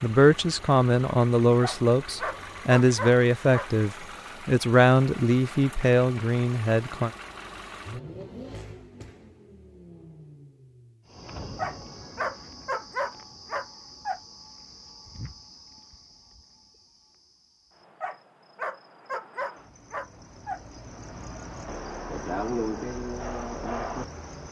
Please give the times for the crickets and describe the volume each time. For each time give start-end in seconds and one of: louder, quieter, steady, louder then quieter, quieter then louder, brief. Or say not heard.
11.1-24.4 quieter then louder.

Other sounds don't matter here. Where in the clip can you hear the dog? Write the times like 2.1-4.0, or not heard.
1.6-3.7, 11.6-14.2, 18.0-20.6.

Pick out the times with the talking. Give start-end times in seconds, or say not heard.
0.0-7.1.